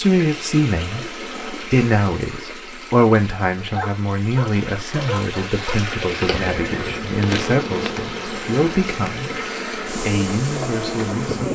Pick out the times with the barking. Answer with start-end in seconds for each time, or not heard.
3.8-5.8.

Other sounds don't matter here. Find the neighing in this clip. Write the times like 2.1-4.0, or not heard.
6.2-7.1.